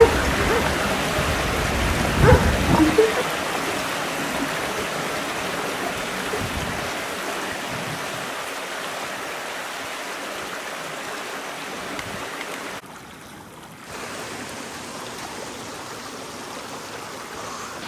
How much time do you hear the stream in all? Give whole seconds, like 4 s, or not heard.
18 s.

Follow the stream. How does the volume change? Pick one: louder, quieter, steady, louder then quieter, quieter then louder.
quieter.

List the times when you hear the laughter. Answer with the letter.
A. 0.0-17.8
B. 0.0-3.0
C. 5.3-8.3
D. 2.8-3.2
D.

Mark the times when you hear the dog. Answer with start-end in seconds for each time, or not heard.
0.0-3.0.